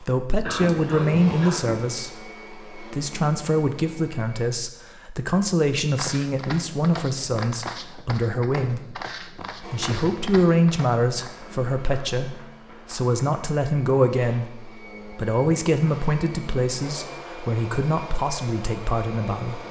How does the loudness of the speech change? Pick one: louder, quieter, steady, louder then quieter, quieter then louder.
steady.